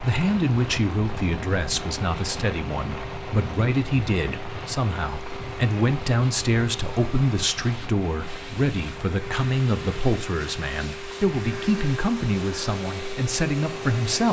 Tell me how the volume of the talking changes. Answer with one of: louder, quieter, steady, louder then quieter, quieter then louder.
steady.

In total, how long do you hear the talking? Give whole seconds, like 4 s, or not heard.
14 s.